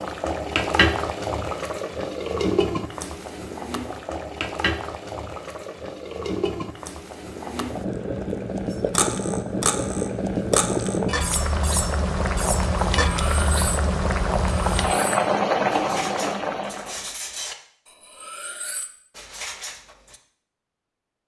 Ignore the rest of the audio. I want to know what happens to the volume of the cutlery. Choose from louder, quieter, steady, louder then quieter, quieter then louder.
quieter.